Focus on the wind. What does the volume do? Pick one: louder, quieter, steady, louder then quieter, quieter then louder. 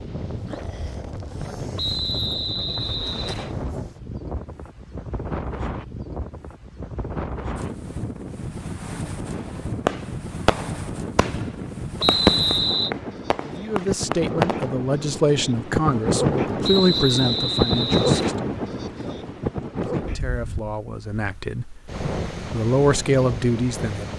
louder then quieter.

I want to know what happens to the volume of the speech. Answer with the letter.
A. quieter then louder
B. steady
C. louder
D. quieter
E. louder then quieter
A.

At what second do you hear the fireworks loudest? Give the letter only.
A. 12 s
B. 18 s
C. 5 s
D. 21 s
A.